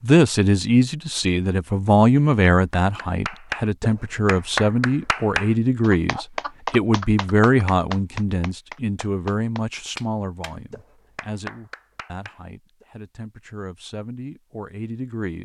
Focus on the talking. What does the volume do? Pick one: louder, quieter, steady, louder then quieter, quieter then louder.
quieter.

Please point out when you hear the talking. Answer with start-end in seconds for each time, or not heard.
0.0-15.4.